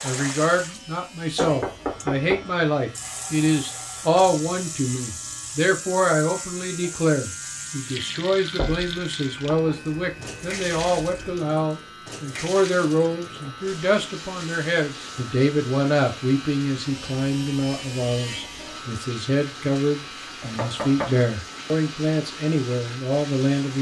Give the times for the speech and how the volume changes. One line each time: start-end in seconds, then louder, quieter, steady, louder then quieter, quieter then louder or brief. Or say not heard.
0.0-23.7 steady.